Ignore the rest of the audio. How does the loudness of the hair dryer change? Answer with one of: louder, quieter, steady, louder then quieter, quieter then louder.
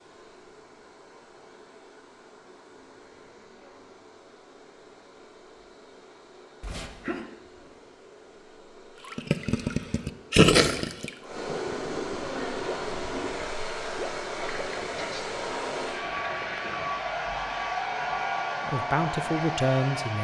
louder.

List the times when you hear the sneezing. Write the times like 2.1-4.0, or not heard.
6.6-7.3, 14.9-15.3.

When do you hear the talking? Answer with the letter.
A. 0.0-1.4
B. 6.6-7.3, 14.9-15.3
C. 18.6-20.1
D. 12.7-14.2
C.